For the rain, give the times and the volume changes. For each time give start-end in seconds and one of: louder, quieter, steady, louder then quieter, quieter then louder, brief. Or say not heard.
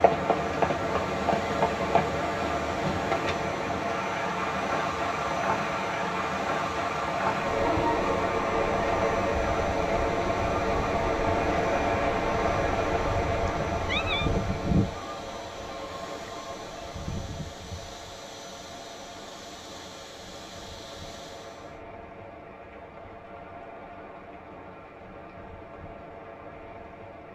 0.0-27.3 quieter.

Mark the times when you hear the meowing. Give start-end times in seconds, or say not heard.
13.4-14.3.